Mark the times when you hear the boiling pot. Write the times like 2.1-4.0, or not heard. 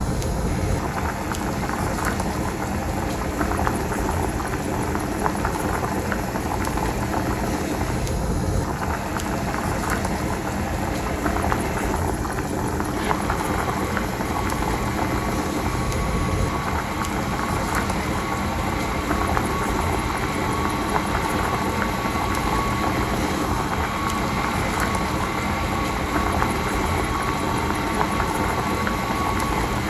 0.0-29.8.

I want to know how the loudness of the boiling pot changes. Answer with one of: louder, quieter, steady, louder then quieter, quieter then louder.
steady.